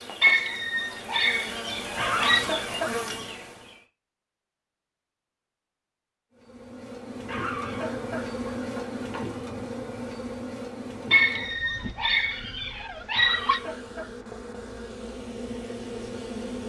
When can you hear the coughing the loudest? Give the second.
2 s.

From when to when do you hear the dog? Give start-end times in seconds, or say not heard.
0.2-2.5, 11.1-13.6.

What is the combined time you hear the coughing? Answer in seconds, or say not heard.
4 s.